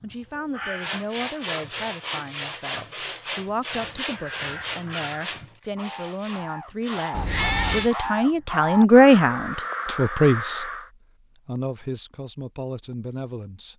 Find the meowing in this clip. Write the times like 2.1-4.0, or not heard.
7.1-7.9.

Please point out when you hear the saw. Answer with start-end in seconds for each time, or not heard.
0.8-8.1.